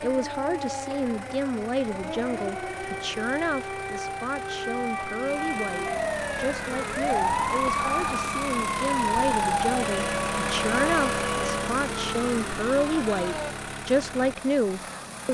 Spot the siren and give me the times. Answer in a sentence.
You can hear the siren from 0.0 to 13.6 s.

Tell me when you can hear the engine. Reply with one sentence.
You can hear the engine from 0.0 to 15.2 s.